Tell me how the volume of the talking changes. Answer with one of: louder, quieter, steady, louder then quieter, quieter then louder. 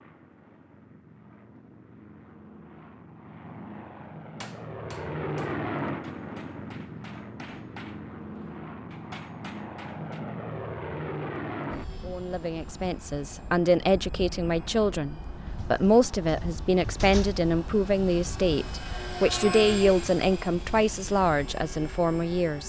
steady.